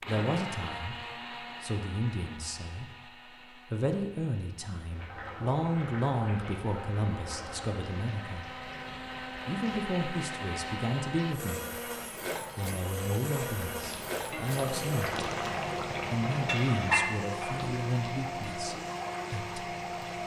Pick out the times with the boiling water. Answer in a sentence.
The boiling water can be heard from 4.9 to 20.2 s.